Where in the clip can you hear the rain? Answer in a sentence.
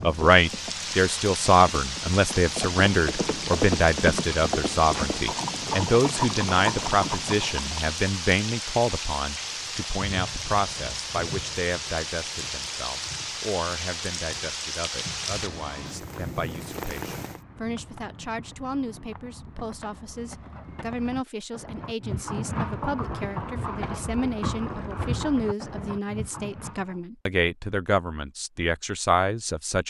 You can hear the rain from 0.0 to 17.4 s.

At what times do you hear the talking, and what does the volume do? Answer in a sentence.
The talking can be heard from 0.0 to 29.8 s, getting quieter then louder.